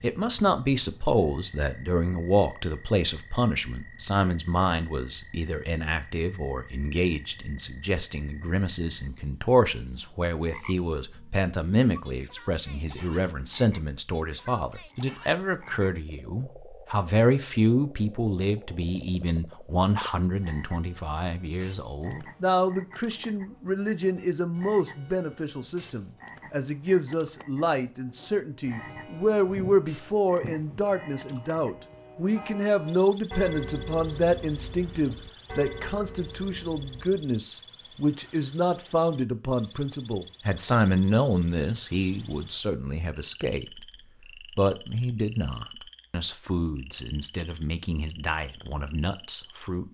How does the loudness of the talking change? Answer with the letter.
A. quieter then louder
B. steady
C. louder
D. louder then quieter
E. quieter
B.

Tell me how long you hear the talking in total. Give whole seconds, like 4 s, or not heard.
49 s.